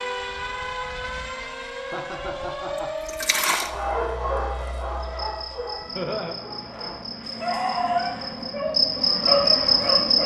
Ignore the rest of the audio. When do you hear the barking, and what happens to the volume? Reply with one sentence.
You can hear the barking from 3.6 to 10.2 s, getting quieter then louder.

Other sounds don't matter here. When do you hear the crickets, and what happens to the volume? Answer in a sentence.
You can hear the crickets from 5.0 to 10.2 s, getting louder.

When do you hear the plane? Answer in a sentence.
The plane can be heard from 0.0 to 10.2 s.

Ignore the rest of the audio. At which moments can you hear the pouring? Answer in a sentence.
You can hear the pouring from 2.8 to 3.7 s.